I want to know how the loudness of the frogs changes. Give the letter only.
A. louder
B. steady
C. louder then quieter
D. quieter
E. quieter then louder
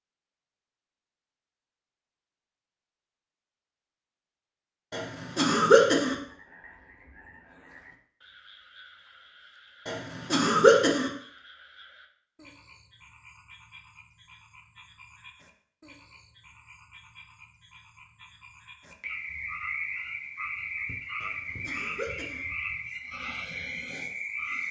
A.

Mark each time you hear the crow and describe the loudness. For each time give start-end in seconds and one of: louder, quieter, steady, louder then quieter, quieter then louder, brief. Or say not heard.
not heard.